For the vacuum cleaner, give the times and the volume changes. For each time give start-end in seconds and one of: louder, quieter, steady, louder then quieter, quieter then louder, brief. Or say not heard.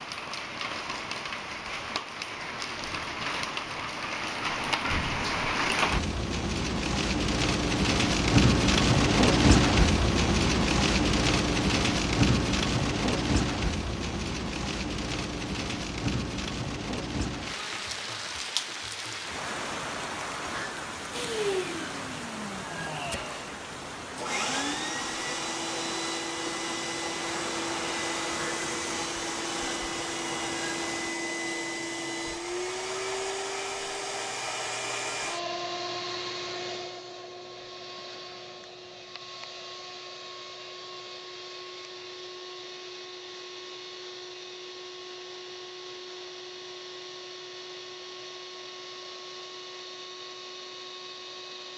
21.1-51.7 quieter.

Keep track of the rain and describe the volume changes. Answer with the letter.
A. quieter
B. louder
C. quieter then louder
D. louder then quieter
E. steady
D.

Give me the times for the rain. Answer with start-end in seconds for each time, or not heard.
0.0-31.1.